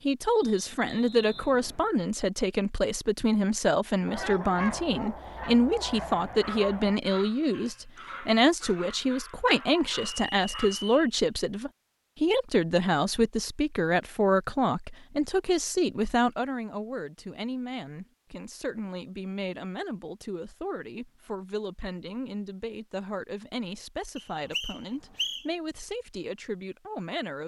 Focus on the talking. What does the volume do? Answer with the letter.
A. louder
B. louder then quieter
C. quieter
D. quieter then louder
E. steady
C.